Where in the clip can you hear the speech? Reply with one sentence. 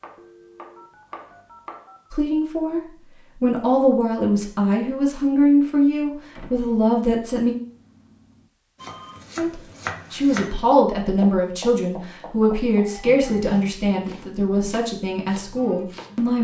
You can hear the speech from 2.1 to 7.5 s and from 9.3 to 16.3 s.